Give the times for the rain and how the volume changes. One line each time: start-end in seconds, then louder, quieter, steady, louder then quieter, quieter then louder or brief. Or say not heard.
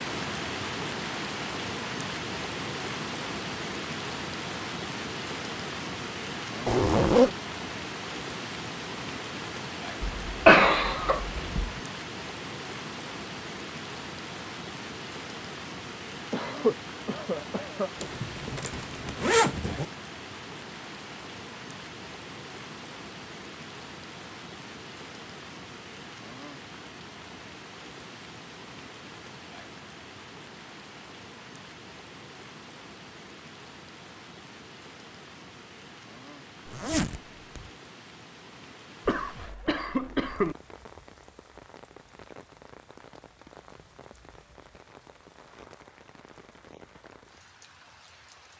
0.0-48.5 quieter.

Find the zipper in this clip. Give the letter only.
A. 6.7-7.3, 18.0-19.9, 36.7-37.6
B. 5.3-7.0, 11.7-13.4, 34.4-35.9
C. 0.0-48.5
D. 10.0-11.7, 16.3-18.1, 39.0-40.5
A.